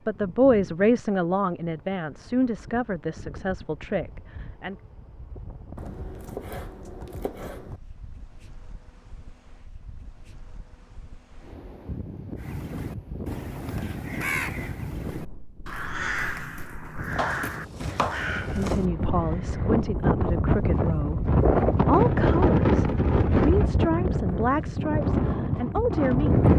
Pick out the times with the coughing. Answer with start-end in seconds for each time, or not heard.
not heard.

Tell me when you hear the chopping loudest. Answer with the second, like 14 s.
18 s.